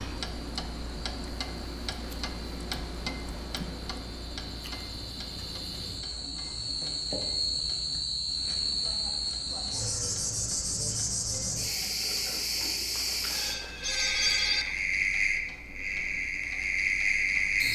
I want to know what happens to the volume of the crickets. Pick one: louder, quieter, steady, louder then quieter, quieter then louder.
louder.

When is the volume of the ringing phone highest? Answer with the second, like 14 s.
14 s.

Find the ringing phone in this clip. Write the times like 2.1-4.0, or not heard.
12.9-14.7.